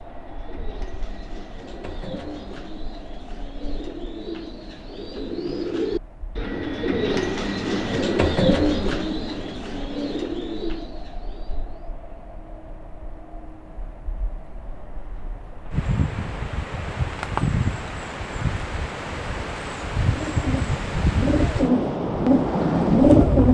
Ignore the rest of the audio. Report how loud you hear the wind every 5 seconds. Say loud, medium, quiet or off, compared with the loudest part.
quiet, quiet, quiet, medium, loud.